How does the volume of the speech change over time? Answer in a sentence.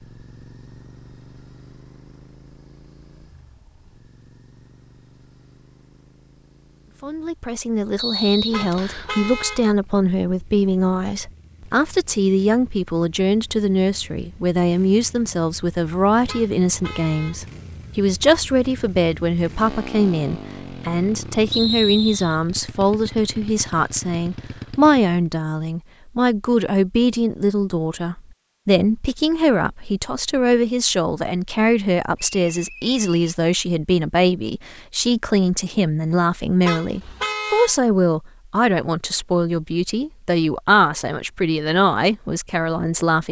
The loudness of the speech stays about the same.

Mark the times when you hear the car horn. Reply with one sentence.
The car horn can be heard from 8.5 to 9.7 s, from 16.2 to 17.4 s and from 36.6 to 37.8 s.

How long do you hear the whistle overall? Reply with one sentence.
The whistle can be heard for 3 seconds in total.